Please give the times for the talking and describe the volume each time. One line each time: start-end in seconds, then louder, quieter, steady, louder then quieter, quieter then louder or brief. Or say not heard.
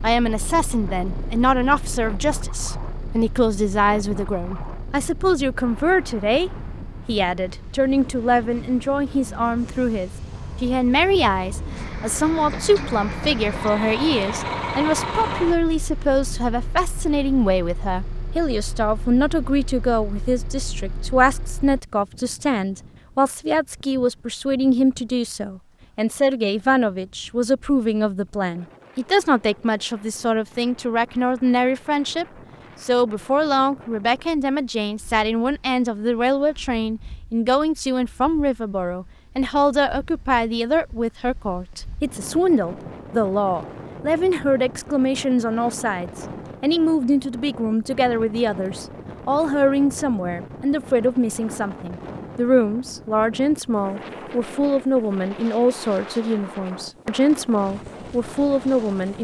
0.0-59.1 steady.